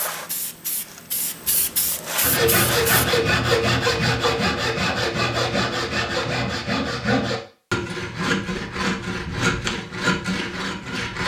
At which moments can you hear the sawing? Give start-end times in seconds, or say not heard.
2.2-11.2.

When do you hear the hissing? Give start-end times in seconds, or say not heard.
0.0-3.1.